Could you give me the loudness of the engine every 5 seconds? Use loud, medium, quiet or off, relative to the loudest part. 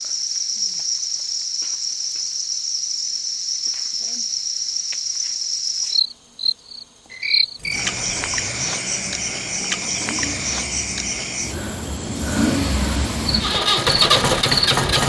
off, quiet, loud.